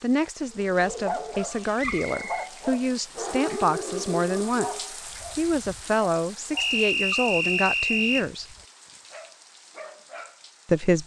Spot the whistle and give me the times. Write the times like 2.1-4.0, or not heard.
1.8-2.5, 6.5-8.2.